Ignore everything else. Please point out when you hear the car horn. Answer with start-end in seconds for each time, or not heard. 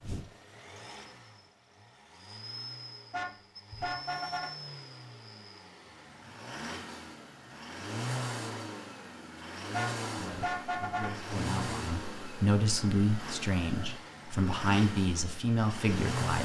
3.1-4.5, 9.7-11.2.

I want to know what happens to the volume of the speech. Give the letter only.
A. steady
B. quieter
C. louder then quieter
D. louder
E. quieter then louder
D.